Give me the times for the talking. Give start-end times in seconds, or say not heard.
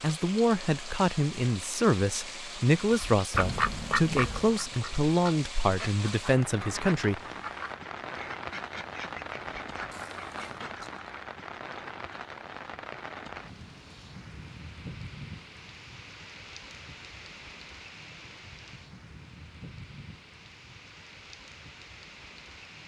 0.0-7.2.